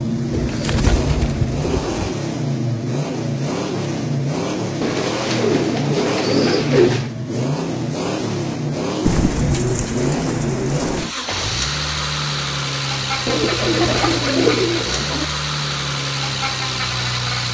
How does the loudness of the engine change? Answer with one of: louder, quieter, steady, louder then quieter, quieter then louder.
steady.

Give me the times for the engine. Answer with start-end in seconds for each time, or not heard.
0.0-17.4.